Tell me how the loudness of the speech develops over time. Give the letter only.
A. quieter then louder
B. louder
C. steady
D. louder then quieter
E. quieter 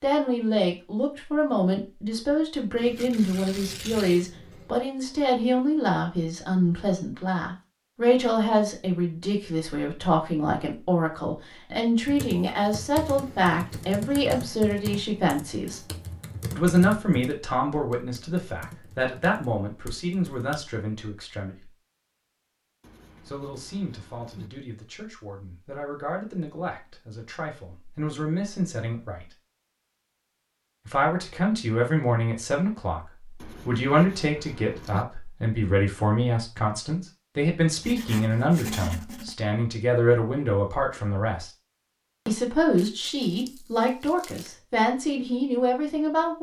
A.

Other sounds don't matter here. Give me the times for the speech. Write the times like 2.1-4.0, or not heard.
0.0-15.8, 16.5-21.7, 23.2-29.3, 30.9-41.5, 42.2-46.3.